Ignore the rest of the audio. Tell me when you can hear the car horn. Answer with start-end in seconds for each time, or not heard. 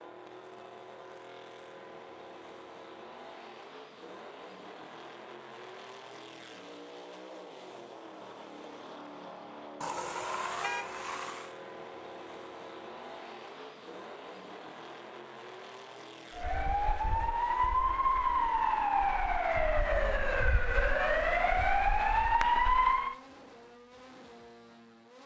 9.8-11.5.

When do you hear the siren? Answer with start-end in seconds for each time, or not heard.
16.3-23.1.